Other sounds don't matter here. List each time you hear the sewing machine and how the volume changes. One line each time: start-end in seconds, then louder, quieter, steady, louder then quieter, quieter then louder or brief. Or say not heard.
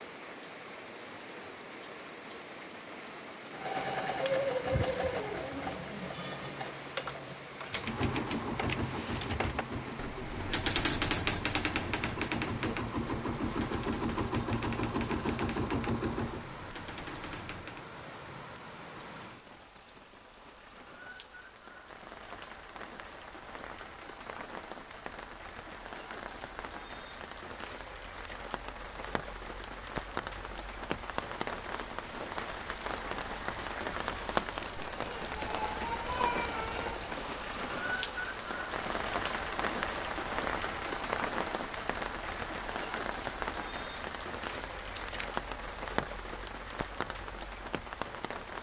3.5-16.4 quieter then louder.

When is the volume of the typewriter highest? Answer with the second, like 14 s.
11 s.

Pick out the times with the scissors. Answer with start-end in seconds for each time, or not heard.
44.6-45.4.